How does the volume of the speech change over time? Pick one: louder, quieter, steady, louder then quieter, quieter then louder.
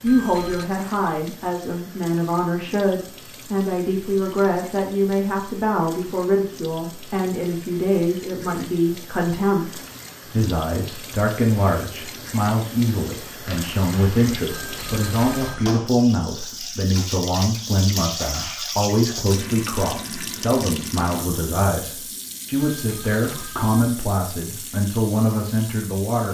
steady.